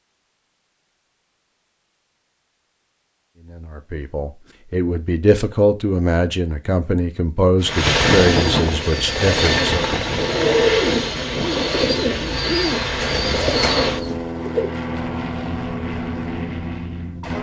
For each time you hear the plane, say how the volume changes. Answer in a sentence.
The plane can be heard from 7.6 to 17.3 s, getting quieter.